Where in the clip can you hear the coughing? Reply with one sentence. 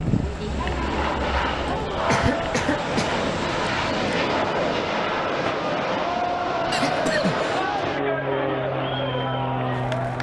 The coughing can be heard from 2.0 to 3.2 s and from 6.7 to 7.5 s.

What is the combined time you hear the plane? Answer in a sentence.
You can hear the plane for 10 seconds altogether.